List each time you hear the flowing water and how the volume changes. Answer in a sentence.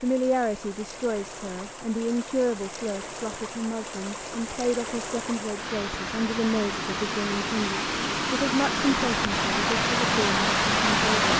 The flowing water can be heard from 0.0 to 11.3 s, getting louder.